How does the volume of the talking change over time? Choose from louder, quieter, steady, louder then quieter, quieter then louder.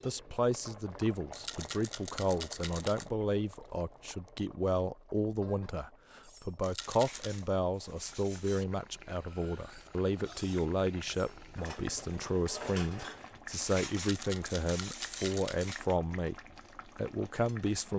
steady.